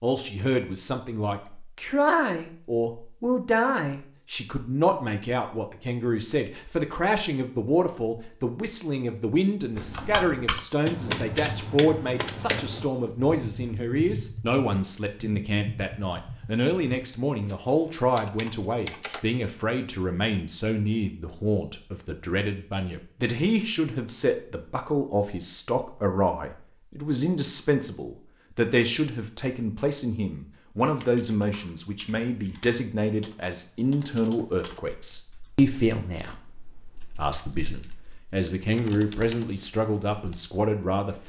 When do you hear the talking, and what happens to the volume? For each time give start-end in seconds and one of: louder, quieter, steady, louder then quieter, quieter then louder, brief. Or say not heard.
0.0-41.2 steady.